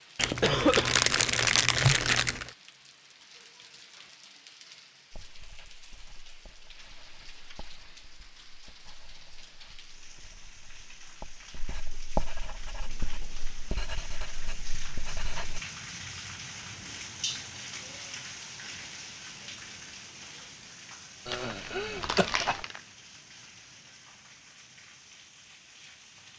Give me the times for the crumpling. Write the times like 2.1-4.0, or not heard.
0.1-2.5, 21.3-22.8.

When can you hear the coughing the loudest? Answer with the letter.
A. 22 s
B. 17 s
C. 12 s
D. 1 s
D.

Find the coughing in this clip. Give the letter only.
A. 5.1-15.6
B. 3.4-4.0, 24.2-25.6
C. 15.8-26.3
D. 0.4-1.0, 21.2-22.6
D.